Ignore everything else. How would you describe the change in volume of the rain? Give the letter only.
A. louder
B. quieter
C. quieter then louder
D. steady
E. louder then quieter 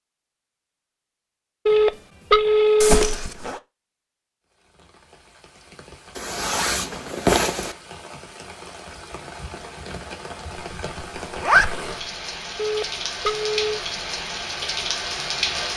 A.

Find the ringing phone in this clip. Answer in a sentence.
You can hear the ringing phone from 1.6 to 3.1 s and from 12.6 to 13.8 s.